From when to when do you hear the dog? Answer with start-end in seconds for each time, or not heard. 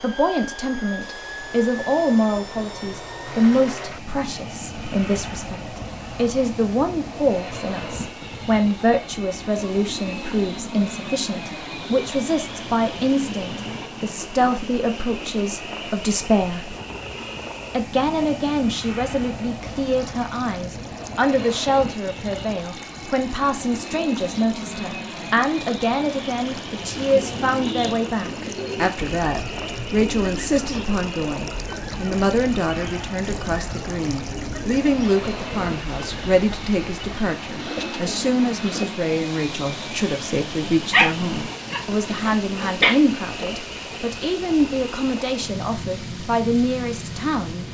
40.9-42.9.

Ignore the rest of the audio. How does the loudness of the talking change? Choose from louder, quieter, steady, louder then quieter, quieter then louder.
steady.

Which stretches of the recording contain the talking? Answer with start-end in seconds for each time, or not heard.
0.0-16.8, 17.7-47.6.